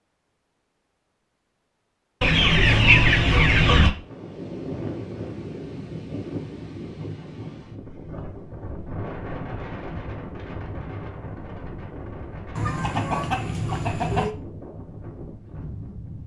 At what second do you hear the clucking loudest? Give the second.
3 s.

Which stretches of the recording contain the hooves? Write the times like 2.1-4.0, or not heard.
not heard.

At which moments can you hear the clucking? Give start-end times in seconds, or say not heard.
2.2-3.9, 12.6-14.3.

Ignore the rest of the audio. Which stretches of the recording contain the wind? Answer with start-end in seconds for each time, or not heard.
3.9-16.2.